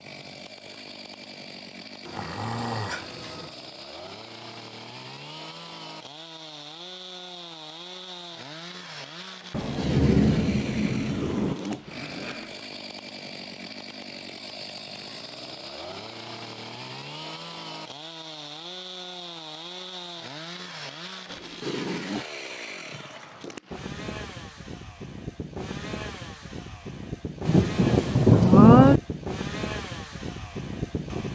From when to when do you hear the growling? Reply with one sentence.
You can hear the growling from 2.0 to 3.5 s, from 11.1 to 12.6 s and from 21.2 to 22.2 s.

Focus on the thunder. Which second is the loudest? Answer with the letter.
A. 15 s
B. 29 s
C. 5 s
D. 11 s
B.